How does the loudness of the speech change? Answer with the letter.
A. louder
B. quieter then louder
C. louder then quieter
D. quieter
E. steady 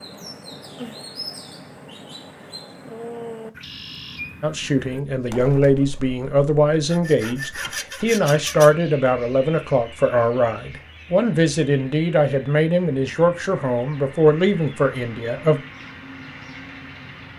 E.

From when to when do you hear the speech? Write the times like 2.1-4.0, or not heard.
4.4-15.6.